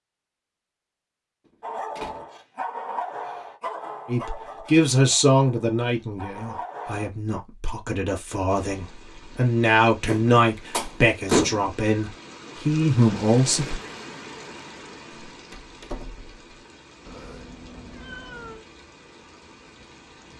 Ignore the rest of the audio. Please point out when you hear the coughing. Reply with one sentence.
The coughing can't be heard in this clip.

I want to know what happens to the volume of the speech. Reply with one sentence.
The loudness of the speech goes down, then up.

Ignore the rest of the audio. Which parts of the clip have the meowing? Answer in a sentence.
You can hear the meowing from 17.1 to 18.6 s.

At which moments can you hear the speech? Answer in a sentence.
The speech can be heard from 4.0 to 13.8 s.